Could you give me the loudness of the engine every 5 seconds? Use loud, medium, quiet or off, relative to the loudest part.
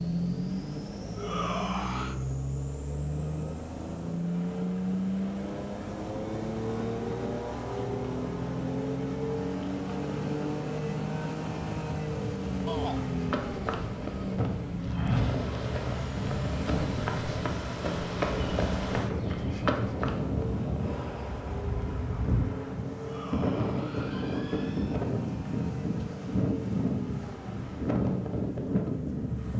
loud, loud, loud, medium, medium, medium.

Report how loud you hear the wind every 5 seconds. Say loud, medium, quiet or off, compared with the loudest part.
quiet, medium, medium, loud, loud, loud.